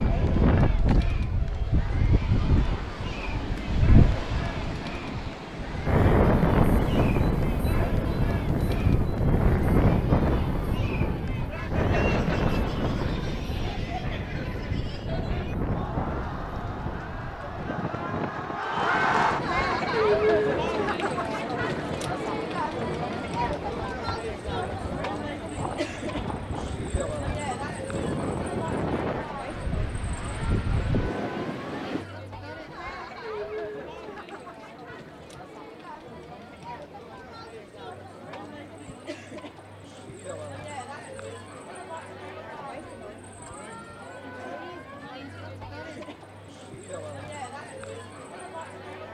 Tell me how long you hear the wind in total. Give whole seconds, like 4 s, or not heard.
32 s.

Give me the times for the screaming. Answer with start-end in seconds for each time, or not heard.
not heard.